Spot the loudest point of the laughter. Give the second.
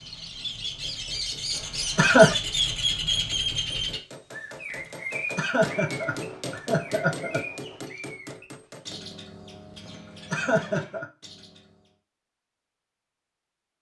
2 s.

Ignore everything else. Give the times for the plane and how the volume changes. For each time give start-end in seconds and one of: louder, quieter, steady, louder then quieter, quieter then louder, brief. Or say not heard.
not heard.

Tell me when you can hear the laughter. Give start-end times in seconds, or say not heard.
1.6-2.4, 5.3-7.4, 10.3-11.1.